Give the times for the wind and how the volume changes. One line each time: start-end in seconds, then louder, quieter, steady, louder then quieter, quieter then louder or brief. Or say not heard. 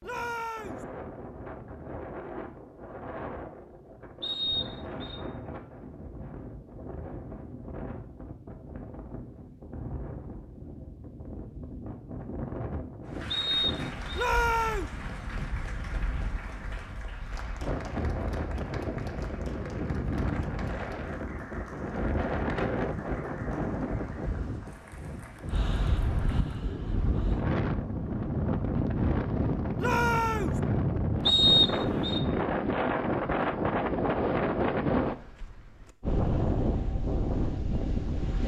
0.0-38.4 louder.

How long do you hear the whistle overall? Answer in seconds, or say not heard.
3 s.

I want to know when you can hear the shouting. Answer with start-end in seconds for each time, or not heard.
0.0-0.8, 14.2-14.9, 29.8-30.6.